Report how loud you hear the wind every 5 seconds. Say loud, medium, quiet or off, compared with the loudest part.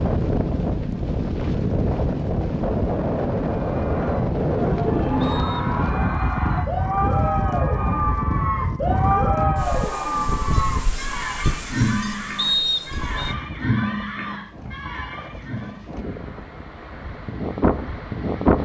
loud, loud, medium, loud.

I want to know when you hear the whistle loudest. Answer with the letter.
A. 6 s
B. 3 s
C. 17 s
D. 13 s
D.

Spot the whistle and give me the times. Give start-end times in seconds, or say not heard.
5.2-5.7, 12.3-13.3.